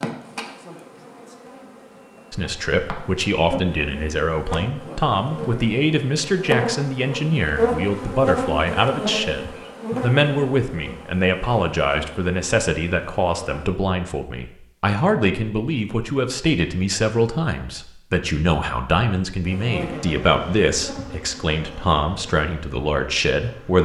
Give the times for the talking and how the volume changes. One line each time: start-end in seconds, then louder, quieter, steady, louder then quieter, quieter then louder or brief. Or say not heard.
2.3-23.8 steady.